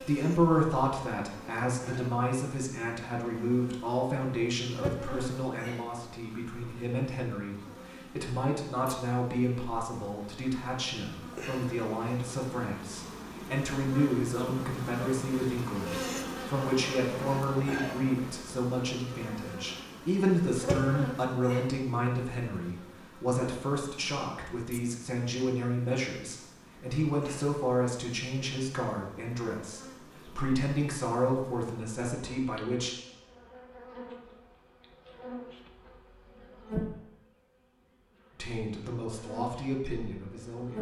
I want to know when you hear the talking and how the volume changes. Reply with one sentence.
You can hear the talking from 0.0 to 33.0 s, at a steady volume; and briefly from 38.4 to 40.7 s.